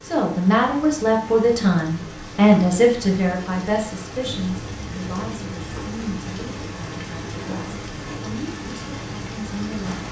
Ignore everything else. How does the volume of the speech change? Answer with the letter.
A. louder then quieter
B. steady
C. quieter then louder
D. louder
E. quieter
E.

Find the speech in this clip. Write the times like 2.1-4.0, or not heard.
0.0-10.0.